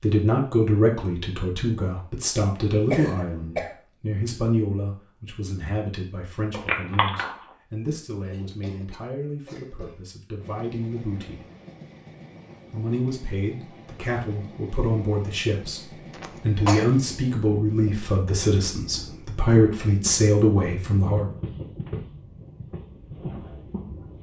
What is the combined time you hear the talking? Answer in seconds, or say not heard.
20 s.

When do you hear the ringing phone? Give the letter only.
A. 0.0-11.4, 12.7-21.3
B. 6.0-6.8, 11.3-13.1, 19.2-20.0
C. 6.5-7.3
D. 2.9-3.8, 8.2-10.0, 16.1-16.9
C.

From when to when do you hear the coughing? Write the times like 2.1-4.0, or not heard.
2.9-3.8, 8.2-10.0, 16.1-16.9.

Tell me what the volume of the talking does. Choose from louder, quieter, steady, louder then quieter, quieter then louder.
quieter then louder.